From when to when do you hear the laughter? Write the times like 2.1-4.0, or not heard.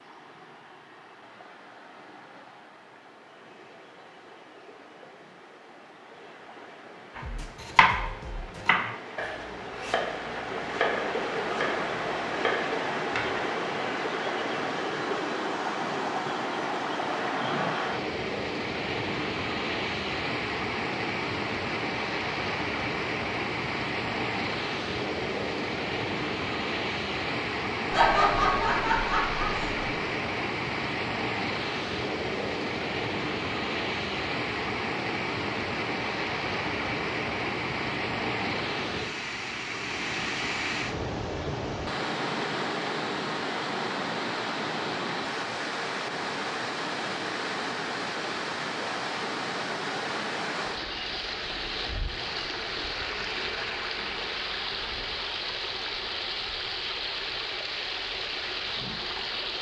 27.9-29.8.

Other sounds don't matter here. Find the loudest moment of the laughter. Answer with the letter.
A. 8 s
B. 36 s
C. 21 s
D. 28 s
D.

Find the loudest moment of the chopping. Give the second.
8 s.